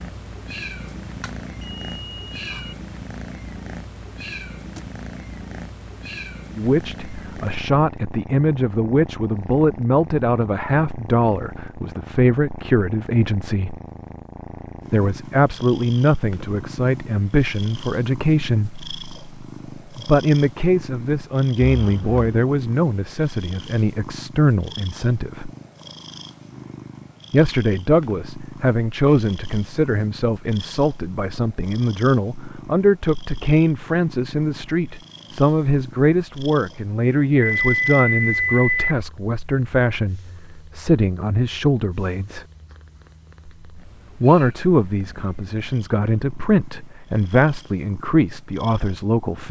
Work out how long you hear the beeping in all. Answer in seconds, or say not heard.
4 s.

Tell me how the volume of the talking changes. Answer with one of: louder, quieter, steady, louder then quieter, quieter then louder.
steady.